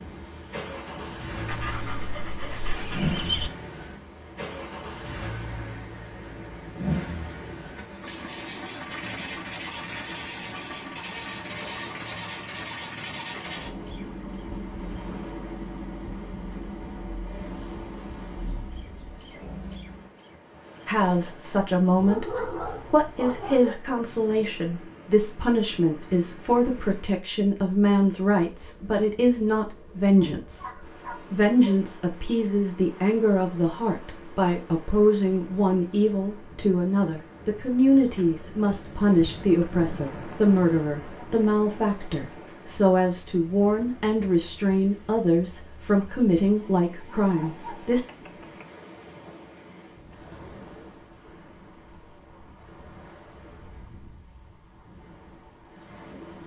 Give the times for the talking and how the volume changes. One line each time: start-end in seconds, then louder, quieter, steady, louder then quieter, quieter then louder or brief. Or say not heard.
20.9-48.0 steady.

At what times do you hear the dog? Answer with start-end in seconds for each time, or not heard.
1.4-3.5, 21.9-23.8, 30.1-31.9, 47.2-48.6.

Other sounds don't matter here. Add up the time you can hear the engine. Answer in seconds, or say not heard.
20 s.